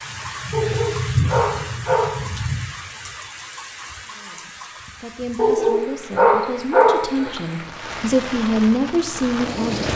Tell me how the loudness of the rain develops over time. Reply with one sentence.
The loudness of the rain goes down, then up.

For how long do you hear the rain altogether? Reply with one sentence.
The rain can be heard for 10 seconds in total.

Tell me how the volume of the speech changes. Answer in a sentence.
The loudness of the speech goes up.